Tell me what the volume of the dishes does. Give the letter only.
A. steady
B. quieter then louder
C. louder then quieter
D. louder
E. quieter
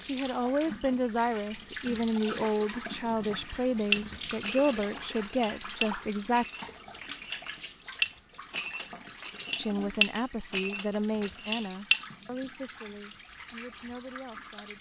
D.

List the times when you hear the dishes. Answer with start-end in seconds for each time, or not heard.
3.9-12.0.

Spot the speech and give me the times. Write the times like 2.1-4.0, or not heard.
0.1-6.5, 9.6-14.7.